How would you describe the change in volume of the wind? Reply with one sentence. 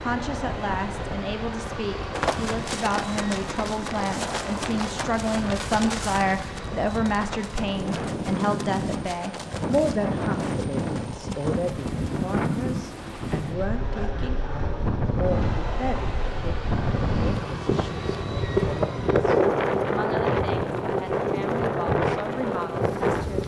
The loudness of the wind goes up.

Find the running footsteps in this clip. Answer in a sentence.
The running footsteps can be heard from 2.1 to 12.4 s.